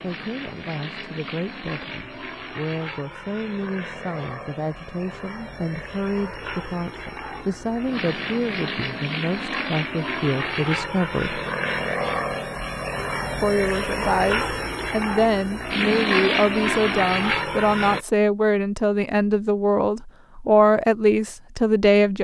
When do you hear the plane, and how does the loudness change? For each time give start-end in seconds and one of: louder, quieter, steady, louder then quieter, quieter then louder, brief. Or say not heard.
0.0-18.1 louder.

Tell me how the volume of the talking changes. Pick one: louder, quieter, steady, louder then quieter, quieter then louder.
louder.